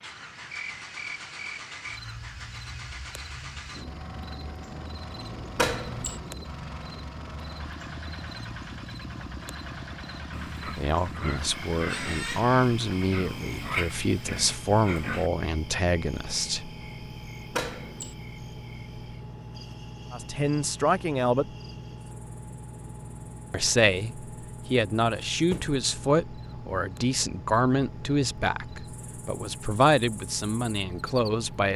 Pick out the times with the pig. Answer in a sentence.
You can hear the pig from 10.3 to 15.3 s.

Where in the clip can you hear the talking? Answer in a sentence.
You can hear the talking from 10.7 to 16.7 s, from 20.1 to 21.5 s and from 23.5 to 31.7 s.